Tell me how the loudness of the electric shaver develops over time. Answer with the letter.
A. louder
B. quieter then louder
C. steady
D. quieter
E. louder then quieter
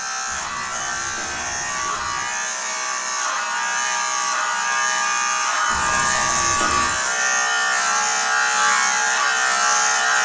A.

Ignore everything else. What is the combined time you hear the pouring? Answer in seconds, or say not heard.
3 s.